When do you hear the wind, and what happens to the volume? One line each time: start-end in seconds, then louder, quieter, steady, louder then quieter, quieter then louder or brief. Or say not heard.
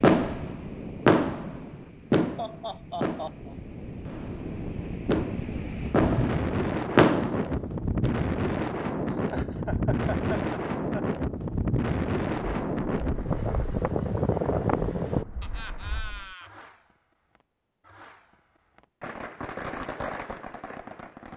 0.1-15.2 louder.